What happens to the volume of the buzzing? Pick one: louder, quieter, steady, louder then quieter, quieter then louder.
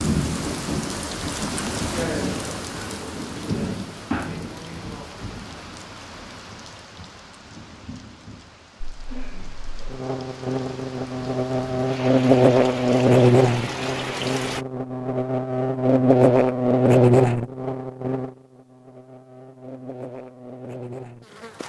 louder then quieter.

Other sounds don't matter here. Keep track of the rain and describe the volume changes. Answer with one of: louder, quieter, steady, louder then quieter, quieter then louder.
quieter then louder.